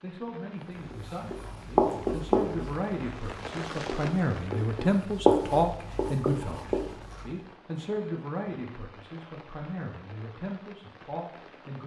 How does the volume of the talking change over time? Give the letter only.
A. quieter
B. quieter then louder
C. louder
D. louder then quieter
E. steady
D.